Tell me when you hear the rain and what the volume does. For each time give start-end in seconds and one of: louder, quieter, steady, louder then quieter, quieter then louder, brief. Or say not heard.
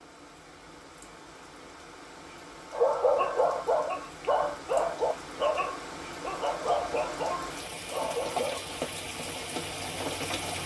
0.0-10.6 louder.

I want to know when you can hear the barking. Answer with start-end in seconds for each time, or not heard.
2.7-8.6.